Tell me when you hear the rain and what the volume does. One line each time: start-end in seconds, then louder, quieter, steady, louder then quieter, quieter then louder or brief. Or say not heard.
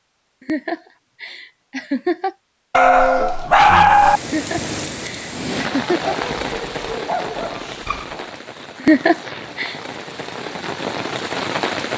3.8-11.9 quieter then louder.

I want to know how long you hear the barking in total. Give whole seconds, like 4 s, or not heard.
4 s.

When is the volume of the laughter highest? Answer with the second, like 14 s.
9 s.